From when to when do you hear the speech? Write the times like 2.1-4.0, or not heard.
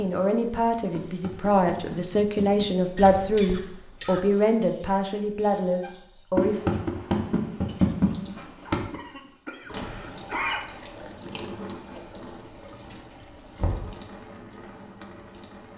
0.0-6.6.